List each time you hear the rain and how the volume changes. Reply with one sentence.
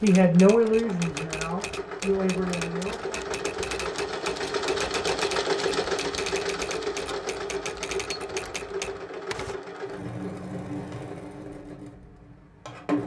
You can't hear the rain here.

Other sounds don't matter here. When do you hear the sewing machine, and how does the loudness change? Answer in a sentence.
You can hear the sewing machine from 0.0 to 13.0 s, getting louder then quieter.